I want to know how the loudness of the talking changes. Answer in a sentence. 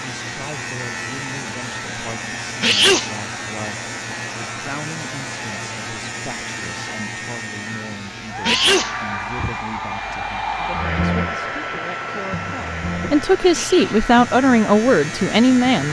The loudness of the talking goes up.